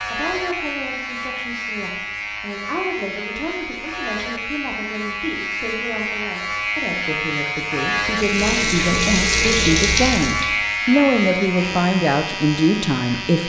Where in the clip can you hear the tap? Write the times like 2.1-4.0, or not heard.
8.1-10.6.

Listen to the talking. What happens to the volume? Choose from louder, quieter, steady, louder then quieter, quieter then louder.
louder.